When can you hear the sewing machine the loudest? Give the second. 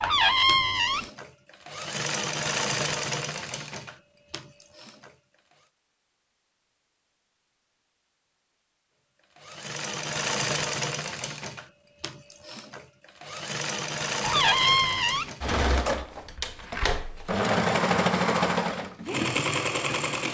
18 s.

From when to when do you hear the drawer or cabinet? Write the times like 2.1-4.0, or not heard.
0.0-1.1, 14.2-15.3.